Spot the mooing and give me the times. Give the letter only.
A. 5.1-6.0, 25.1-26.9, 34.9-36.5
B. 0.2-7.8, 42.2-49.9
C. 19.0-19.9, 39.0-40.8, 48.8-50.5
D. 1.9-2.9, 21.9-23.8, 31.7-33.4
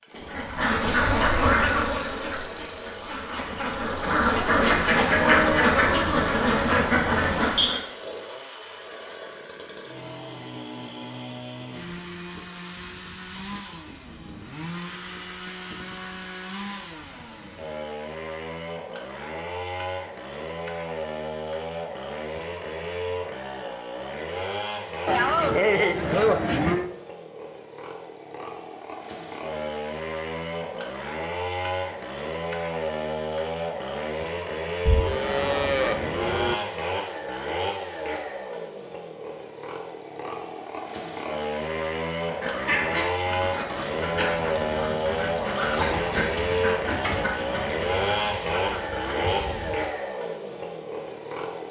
A.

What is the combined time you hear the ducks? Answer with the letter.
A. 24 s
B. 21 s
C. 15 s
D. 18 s
C.